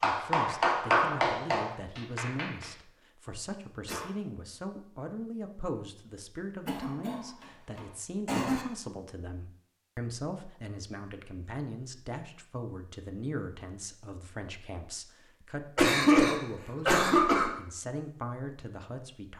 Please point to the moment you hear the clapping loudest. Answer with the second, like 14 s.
1 s.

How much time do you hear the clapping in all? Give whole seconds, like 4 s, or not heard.
3 s.